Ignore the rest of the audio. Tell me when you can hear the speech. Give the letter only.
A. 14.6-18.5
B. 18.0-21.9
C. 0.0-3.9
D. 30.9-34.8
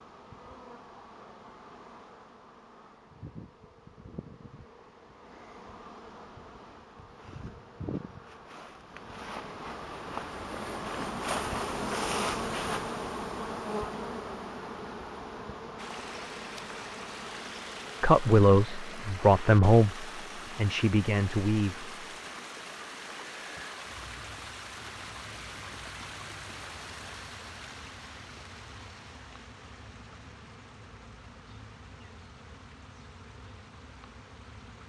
B.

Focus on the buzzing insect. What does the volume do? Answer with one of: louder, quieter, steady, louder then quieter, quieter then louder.
louder then quieter.